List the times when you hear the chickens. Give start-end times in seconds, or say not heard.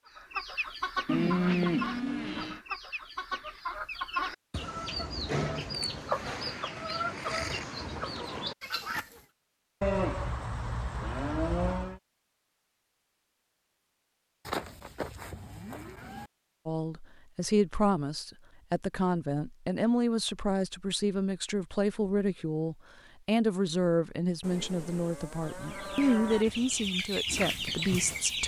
0.1-9.2, 25.4-28.4.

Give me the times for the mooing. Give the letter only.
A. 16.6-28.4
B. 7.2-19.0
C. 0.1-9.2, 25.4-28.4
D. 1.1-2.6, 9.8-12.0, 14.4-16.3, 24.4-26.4
D.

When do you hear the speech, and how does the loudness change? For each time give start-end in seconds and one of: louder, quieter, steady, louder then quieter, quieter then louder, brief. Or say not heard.
16.6-28.4 steady.